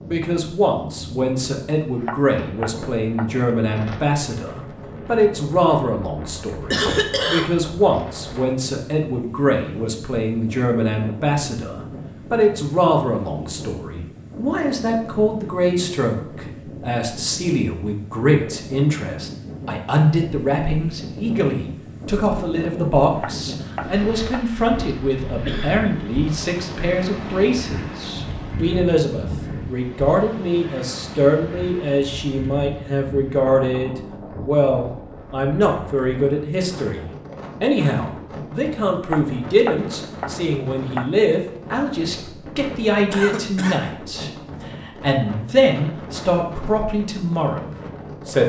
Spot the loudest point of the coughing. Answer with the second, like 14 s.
7 s.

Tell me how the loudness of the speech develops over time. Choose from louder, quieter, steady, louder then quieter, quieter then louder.
steady.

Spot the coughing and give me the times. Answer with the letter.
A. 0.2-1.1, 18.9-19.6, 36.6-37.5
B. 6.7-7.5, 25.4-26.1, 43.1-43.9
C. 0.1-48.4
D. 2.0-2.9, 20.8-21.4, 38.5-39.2
B.